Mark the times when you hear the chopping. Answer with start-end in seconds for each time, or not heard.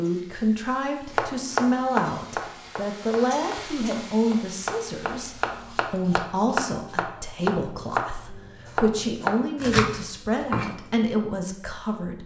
1.1-10.9.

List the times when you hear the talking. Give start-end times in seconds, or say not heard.
0.0-12.2.